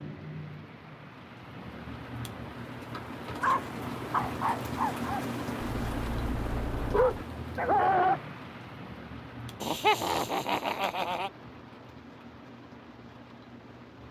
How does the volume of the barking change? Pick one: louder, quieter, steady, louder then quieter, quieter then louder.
quieter then louder.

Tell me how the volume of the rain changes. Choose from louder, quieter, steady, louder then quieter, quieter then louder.
louder then quieter.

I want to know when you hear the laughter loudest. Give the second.
10 s.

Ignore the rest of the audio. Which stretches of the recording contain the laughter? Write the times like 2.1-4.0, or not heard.
9.6-11.3.